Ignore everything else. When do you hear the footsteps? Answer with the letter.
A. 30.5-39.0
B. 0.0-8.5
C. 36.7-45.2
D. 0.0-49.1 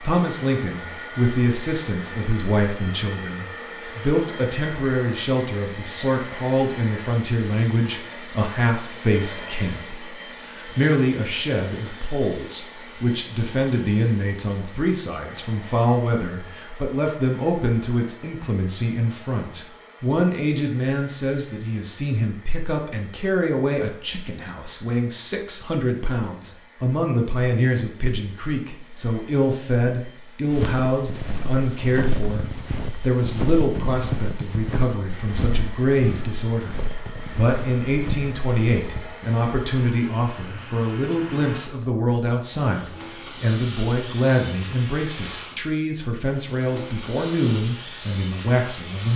A.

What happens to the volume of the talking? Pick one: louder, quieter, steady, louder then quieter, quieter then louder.
steady.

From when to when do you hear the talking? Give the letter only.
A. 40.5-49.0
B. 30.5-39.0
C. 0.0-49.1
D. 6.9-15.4
C.